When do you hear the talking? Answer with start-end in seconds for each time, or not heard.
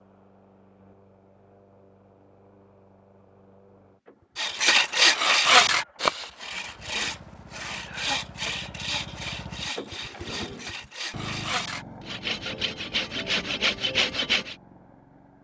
not heard.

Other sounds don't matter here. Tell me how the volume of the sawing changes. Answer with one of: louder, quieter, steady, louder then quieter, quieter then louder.
quieter then louder.